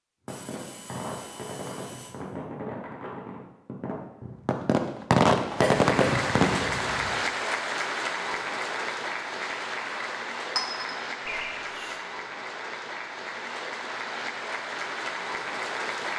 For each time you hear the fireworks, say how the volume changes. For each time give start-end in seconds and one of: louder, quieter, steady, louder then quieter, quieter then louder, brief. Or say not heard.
0.2-6.6 louder.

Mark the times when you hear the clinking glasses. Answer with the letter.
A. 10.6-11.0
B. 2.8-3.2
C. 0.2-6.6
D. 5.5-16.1
A.